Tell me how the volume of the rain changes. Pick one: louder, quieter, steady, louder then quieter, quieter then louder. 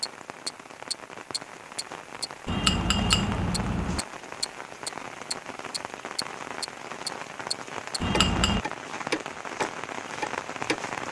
louder.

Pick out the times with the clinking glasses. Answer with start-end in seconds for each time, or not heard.
2.5-4.0, 8.0-8.7.